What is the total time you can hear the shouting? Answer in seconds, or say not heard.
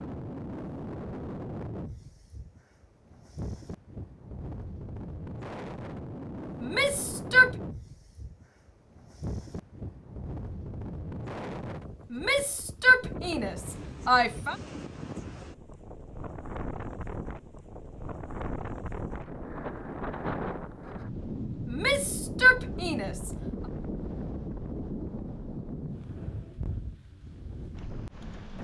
5 s.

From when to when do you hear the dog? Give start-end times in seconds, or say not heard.
not heard.